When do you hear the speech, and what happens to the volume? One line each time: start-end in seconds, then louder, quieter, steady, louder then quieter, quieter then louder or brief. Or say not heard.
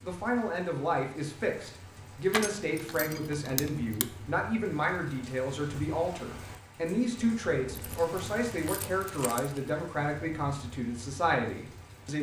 0.0-12.1 steady.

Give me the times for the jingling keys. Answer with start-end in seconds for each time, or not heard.
2.3-4.0, 7.7-9.7.